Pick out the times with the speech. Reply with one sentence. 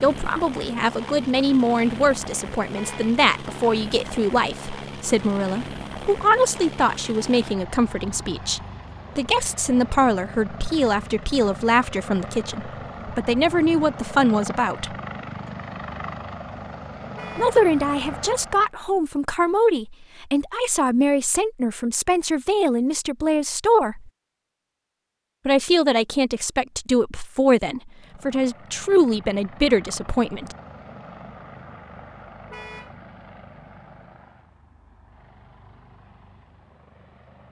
You can hear the speech from 0.0 to 14.9 s, from 17.4 to 24.1 s and from 25.4 to 30.6 s.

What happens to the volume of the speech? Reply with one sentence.
The loudness of the speech stays about the same.